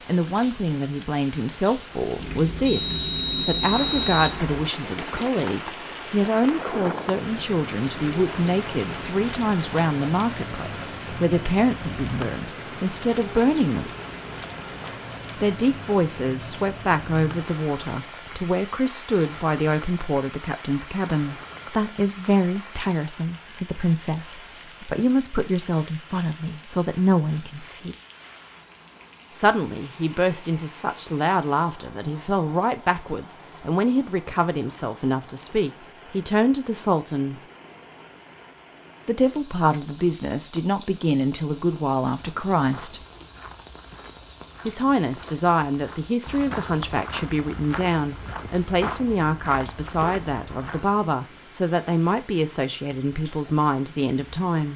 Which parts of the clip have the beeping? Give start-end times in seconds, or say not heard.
2.1-4.6.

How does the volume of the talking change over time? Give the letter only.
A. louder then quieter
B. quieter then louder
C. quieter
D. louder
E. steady
E.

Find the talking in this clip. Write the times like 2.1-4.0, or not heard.
0.1-13.9, 15.3-27.9, 29.3-37.4, 39.0-43.0, 44.6-54.7.